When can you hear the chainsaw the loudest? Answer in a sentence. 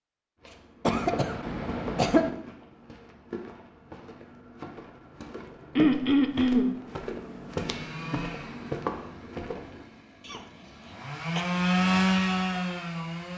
The volume of the chainsaw peaks at 12 seconds.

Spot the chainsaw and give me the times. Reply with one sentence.
You can hear the chainsaw from 7.5 to 13.3 s.